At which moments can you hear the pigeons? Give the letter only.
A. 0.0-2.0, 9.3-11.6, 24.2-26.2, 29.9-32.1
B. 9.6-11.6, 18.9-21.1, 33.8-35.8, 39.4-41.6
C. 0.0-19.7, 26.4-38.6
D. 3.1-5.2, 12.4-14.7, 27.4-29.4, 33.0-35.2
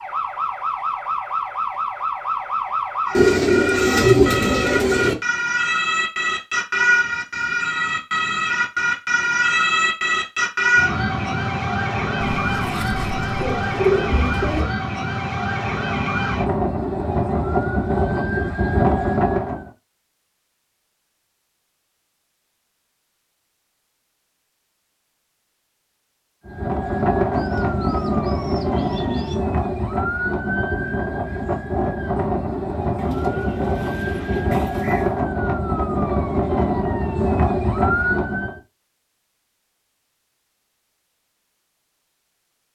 D.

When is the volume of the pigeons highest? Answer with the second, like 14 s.
4 s.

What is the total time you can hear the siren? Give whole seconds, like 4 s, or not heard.
32 s.